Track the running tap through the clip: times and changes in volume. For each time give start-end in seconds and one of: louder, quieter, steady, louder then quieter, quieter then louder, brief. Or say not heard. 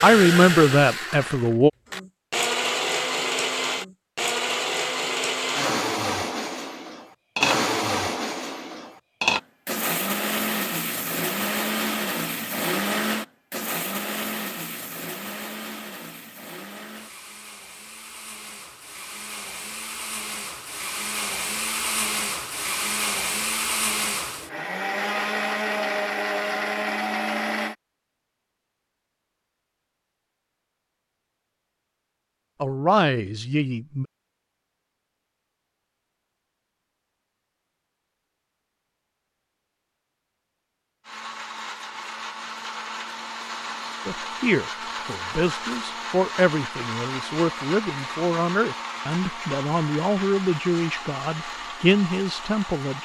not heard.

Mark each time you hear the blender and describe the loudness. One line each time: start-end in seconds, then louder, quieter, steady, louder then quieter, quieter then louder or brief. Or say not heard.
0.0-27.8 quieter then louder
41.0-52.9 steady.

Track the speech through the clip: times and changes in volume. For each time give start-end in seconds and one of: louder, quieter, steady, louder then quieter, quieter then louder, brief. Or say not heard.
0.0-1.7 brief
32.6-34.0 brief
44.0-52.9 steady.